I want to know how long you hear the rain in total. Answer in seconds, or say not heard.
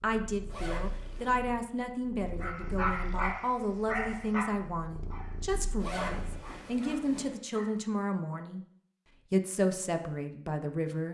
not heard.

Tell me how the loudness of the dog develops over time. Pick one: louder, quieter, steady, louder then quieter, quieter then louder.
quieter.